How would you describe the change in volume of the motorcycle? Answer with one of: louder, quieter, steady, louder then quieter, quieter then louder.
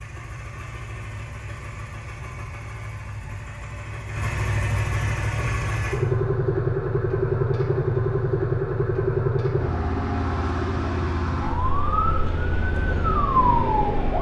louder then quieter.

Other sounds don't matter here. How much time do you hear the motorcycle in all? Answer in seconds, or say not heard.
14 s.